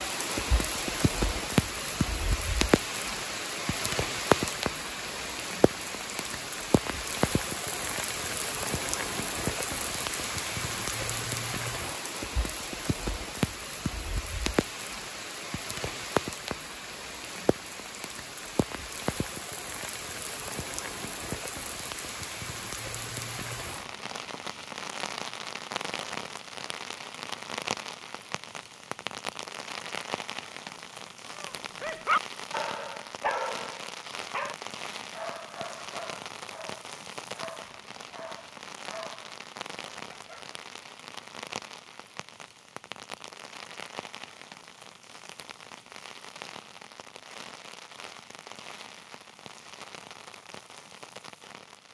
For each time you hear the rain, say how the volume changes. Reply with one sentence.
You can hear the rain from 0.0 to 51.8 s, getting quieter.